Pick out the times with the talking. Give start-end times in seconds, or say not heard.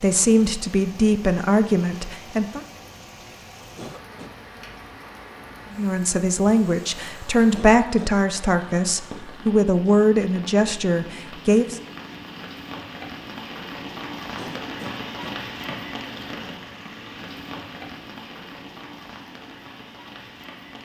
0.0-2.6, 5.7-11.8.